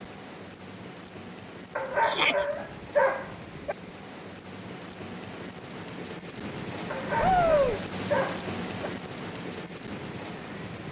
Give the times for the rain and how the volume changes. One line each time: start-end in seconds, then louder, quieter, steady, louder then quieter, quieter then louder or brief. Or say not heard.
0.0-10.8 louder.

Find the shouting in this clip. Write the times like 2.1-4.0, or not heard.
2.0-2.5, 7.2-7.8.